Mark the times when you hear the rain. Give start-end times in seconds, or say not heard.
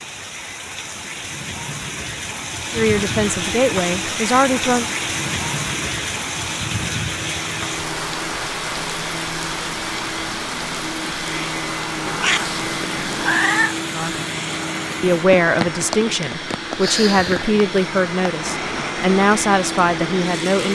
0.0-20.7.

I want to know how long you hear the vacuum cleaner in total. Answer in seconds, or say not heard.
18 s.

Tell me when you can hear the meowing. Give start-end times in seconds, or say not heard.
12.1-13.8.